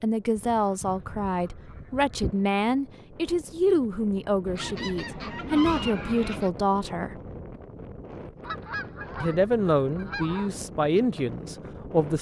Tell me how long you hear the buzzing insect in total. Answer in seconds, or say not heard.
not heard.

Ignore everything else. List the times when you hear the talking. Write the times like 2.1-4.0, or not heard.
0.0-7.2, 9.2-12.1.